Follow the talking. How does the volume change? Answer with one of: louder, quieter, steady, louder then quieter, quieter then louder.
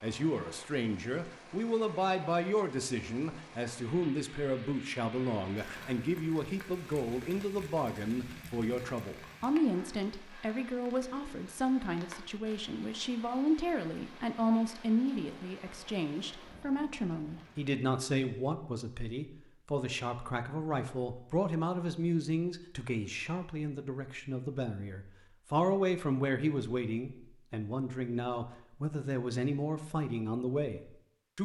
steady.